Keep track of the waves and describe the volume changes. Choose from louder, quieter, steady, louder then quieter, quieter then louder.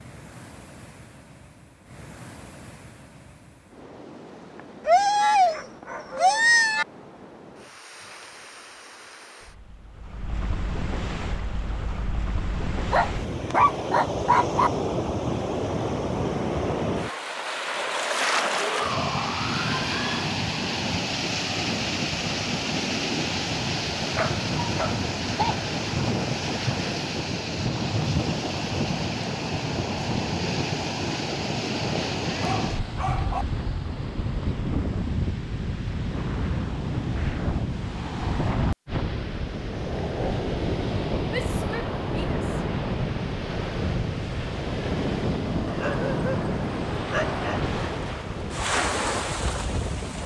louder.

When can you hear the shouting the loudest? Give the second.
19 s.